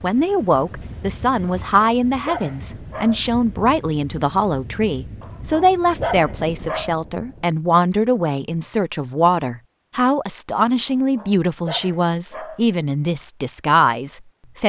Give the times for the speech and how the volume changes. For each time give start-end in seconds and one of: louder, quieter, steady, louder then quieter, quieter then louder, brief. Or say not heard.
0.0-14.6 steady.